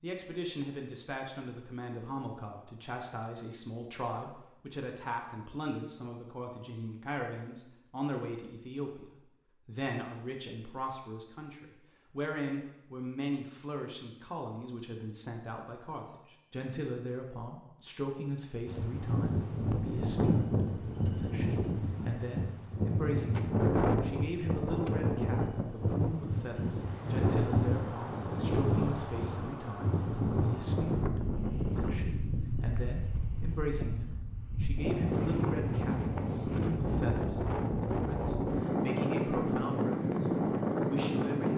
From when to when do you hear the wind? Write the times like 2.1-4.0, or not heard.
18.6-41.5.